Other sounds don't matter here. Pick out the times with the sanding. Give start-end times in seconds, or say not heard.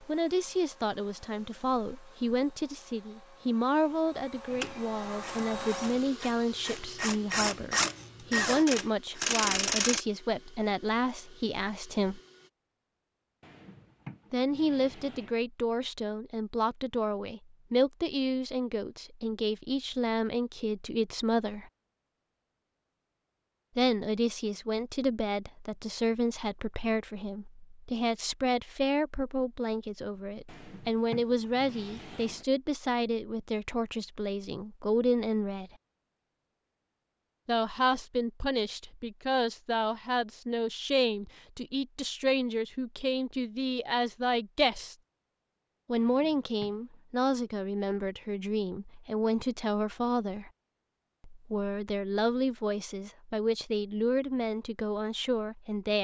not heard.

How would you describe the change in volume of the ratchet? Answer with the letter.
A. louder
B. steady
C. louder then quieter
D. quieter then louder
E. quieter
A.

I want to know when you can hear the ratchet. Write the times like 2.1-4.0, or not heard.
4.5-10.0.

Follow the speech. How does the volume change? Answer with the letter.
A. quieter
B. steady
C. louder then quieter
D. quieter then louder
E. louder
B.